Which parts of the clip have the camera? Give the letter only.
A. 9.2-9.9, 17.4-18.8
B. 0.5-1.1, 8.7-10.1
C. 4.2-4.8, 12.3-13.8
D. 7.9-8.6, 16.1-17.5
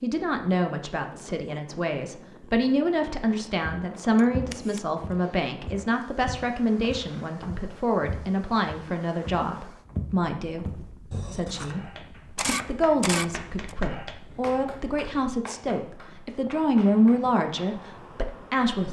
C.